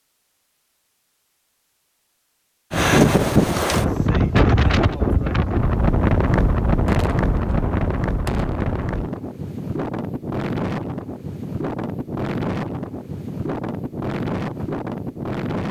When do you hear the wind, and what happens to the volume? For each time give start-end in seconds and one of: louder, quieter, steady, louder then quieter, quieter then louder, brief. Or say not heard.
2.7-15.6 quieter.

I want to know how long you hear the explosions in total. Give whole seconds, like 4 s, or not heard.
2 s.